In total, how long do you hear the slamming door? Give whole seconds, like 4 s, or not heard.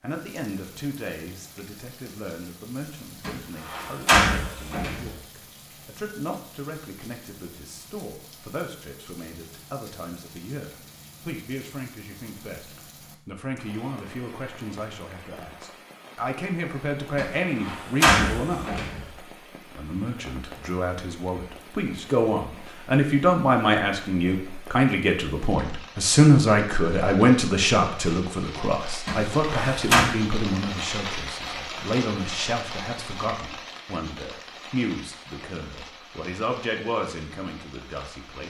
5 s.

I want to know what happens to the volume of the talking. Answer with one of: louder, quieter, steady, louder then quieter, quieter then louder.
louder then quieter.